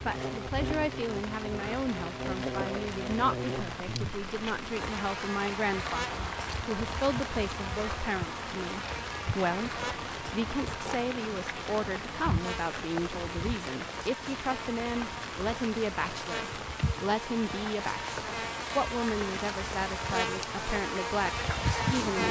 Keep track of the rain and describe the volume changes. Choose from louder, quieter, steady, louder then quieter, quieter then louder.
steady.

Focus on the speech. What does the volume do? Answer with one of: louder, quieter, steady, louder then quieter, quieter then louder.
steady.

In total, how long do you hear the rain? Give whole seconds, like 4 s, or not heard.
22 s.